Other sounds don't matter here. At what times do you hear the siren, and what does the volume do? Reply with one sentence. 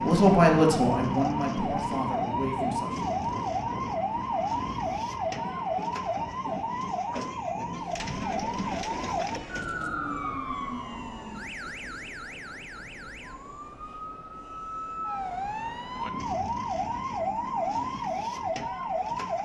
The siren can be heard from 0.0 to 19.4 s, getting quieter then louder.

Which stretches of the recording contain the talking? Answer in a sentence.
You can hear the talking from 0.0 to 3.1 s.